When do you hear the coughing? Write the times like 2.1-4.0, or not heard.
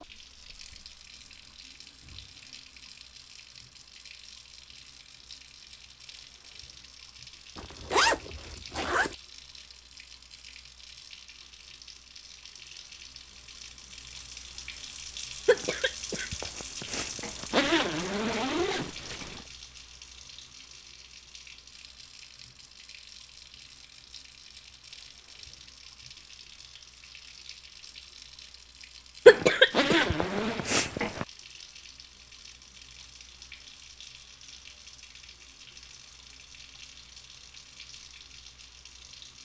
15.4-17.4, 29.2-31.2.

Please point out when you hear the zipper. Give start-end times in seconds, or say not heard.
7.5-9.2, 17.5-19.4, 29.7-30.6.